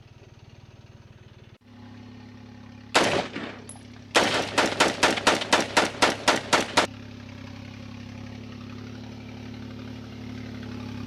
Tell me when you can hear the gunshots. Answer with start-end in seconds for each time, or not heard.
2.9-6.9.